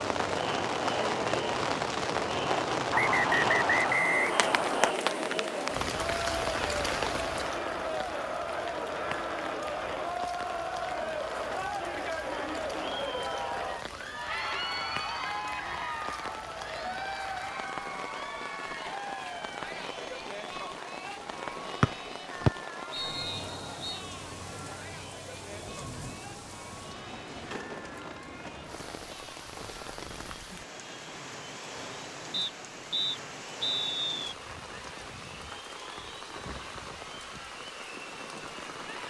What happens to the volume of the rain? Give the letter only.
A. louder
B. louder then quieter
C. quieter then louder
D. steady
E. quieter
E.